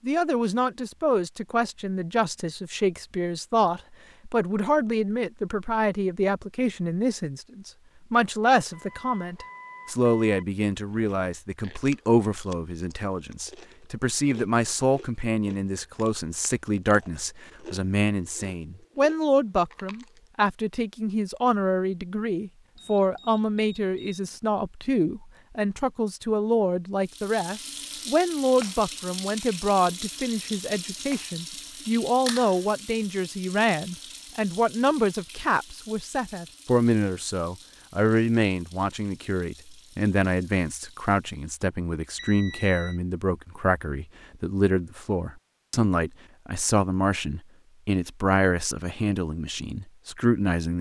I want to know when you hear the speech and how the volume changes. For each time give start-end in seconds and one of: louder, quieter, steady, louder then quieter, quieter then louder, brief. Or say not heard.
0.0-50.7 steady.